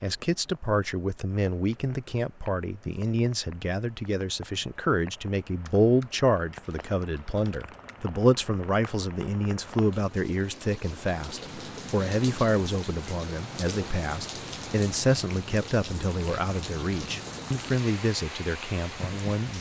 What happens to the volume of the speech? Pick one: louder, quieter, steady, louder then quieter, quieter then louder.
steady.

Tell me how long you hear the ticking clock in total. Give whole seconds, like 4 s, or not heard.
not heard.